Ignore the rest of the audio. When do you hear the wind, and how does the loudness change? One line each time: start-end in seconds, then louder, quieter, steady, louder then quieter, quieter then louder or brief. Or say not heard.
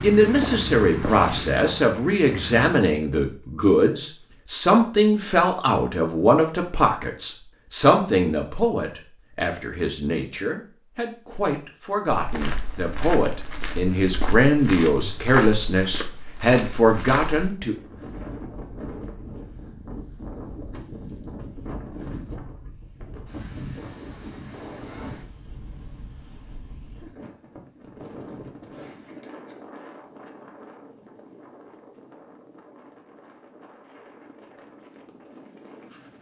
17.7-36.1 quieter.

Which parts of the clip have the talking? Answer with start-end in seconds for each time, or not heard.
0.0-17.8.